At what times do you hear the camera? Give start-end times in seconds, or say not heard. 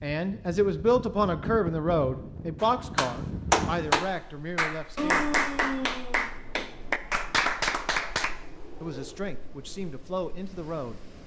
not heard.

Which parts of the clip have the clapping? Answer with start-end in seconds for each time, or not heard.
2.6-8.3.